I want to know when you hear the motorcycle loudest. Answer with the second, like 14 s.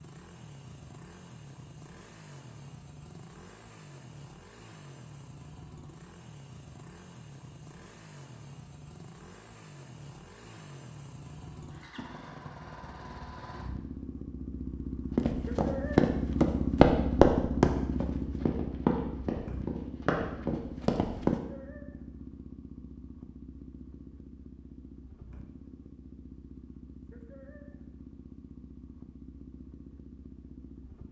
17 s.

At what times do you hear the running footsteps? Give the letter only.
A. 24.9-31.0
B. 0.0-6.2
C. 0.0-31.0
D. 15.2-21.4
D.